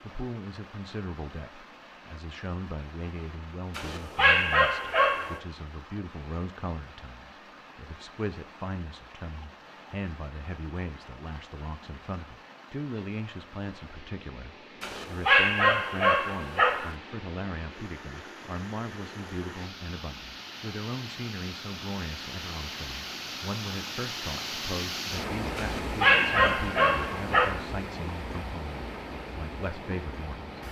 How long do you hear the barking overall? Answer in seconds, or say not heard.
6 s.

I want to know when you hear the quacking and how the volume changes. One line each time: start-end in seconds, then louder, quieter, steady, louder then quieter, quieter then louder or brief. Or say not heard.
not heard.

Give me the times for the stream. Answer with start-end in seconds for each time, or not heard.
0.0-30.6.